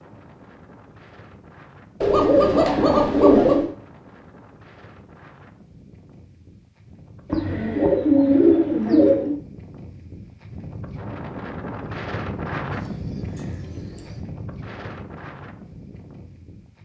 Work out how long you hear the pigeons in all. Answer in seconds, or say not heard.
5 s.